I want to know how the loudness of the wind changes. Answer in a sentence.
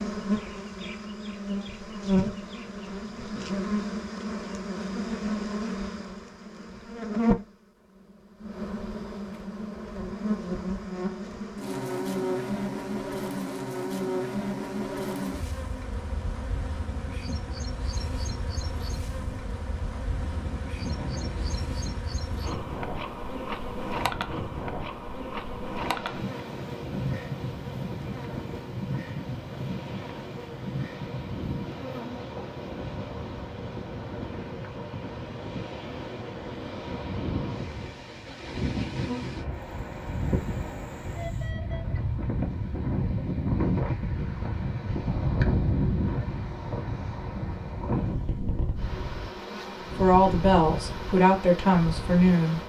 The volume of the wind goes up.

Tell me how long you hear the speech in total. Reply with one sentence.
You can hear the speech for 3 seconds altogether.